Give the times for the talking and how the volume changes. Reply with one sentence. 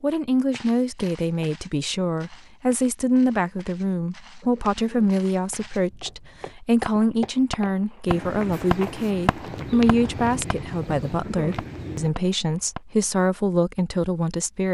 You can hear the talking from 0.0 to 14.6 s, at a steady volume.